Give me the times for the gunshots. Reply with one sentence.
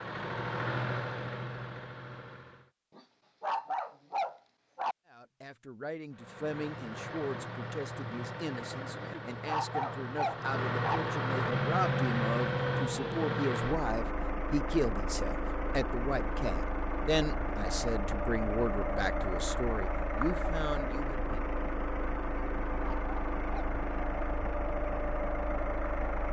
The gunshots can't be heard in this clip.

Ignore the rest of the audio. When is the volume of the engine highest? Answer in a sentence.
The volume of the engine peaks at 12 seconds.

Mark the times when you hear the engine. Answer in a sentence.
The engine can be heard from 0.0 to 2.7 s and from 6.1 to 26.2 s.